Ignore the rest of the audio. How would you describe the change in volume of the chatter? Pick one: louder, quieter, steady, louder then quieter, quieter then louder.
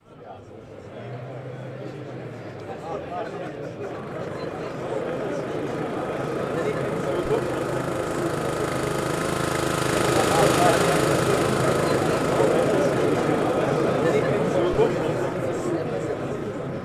louder.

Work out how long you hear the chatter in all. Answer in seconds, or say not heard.
17 s.